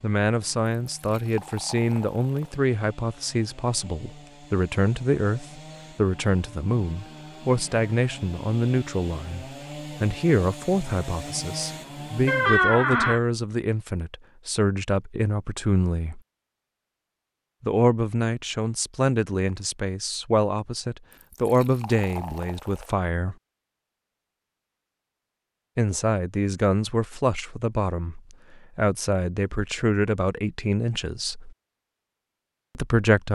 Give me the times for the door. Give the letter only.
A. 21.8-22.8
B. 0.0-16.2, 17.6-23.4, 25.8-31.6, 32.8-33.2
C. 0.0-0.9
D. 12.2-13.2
D.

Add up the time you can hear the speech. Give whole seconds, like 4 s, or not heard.
28 s.